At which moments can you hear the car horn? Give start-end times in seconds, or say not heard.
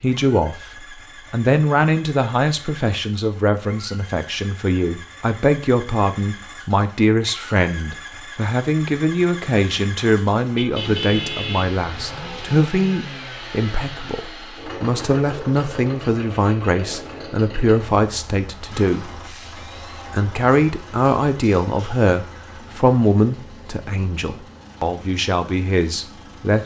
10.6-12.6.